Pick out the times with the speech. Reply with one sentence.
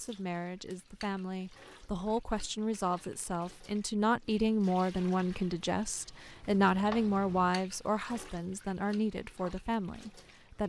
You can hear the speech from 0.0 to 10.6 s.